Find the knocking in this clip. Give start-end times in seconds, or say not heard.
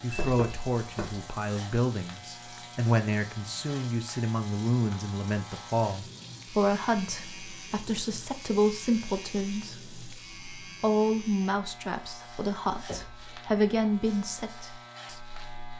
0.1-1.2, 12.8-13.2.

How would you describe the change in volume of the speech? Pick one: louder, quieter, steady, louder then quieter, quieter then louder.
steady.